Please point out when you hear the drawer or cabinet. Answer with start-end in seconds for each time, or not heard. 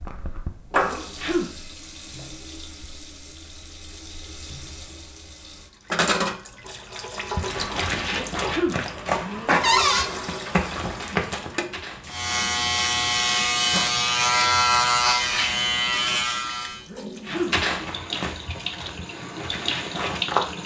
9.6-10.1.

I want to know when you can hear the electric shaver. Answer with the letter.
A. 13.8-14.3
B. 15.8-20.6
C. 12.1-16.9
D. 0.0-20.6
C.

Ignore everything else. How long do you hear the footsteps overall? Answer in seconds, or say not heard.
8 s.